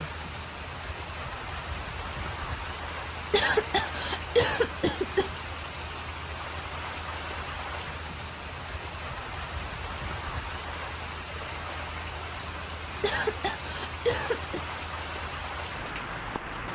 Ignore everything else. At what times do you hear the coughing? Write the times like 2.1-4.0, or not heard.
3.3-5.3, 13.0-14.7.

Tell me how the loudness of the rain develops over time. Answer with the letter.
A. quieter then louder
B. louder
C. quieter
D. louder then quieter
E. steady
E.